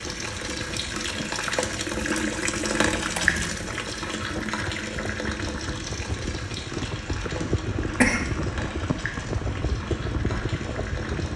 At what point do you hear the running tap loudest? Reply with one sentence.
The loudest moment of the running tap is at 3 seconds.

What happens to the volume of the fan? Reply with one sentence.
The volume of the fan goes up.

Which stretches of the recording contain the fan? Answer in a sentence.
The fan can be heard from 0.0 to 11.3 s.